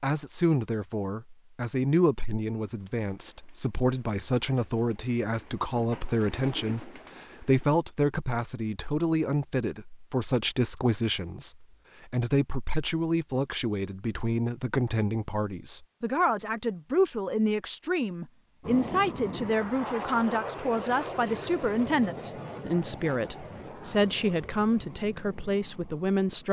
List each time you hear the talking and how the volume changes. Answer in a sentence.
You can hear the talking from 0.0 to 26.4 s, at a steady volume.